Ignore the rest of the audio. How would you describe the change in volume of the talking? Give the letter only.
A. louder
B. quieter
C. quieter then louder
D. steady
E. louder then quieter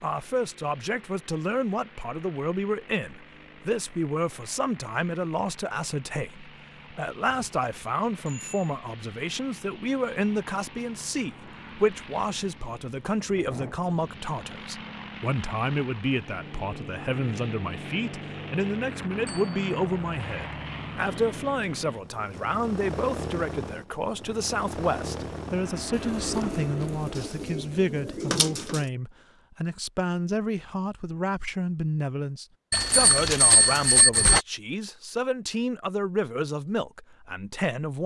D.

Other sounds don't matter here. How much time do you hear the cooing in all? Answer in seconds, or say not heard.
3 s.